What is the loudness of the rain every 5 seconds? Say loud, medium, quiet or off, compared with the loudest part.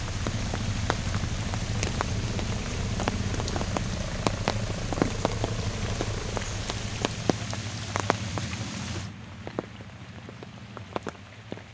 loud, loud, medium.